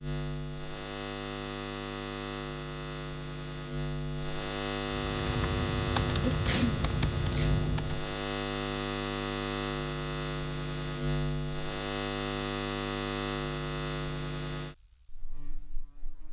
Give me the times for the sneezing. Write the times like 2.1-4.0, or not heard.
6.2-7.5.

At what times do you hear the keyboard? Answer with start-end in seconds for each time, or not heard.
5.1-8.2.